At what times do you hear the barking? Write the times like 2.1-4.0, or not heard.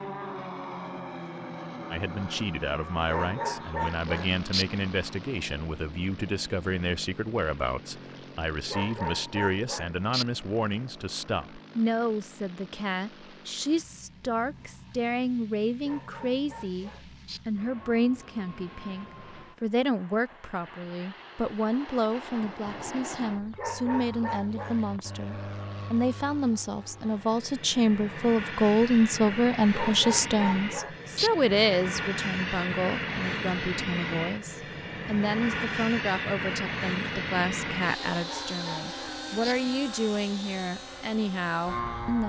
3.0-4.7, 8.7-10.2, 15.8-17.4, 23.6-25.1, 29.7-31.3, 38.1-39.5.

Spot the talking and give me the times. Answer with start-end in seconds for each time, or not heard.
1.9-42.2.